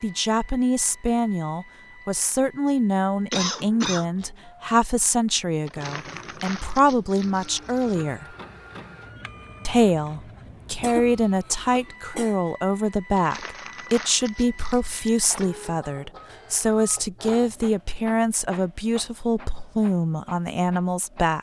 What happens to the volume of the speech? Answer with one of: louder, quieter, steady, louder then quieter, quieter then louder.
steady.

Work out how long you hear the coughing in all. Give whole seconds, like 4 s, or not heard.
2 s.